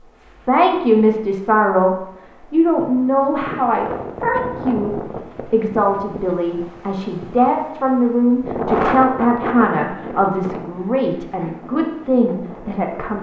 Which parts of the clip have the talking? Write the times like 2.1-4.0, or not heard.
0.2-13.1.